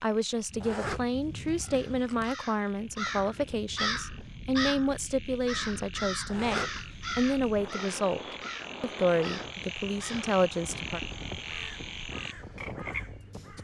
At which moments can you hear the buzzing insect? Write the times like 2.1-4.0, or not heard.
not heard.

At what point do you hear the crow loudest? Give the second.
4 s.